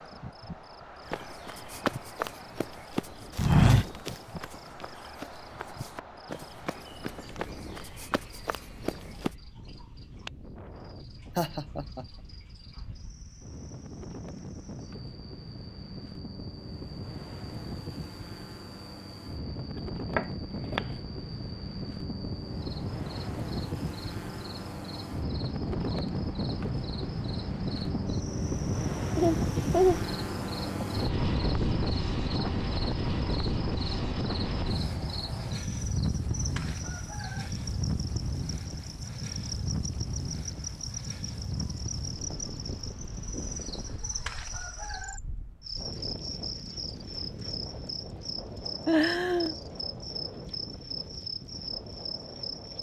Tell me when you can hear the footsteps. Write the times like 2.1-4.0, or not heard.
1.1-9.3.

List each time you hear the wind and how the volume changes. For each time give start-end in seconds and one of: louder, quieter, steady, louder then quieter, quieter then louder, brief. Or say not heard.
0.0-52.7 louder then quieter.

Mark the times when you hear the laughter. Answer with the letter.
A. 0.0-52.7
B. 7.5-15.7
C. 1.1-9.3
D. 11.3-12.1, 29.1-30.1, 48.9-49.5
D.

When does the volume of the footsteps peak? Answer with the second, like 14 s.
4 s.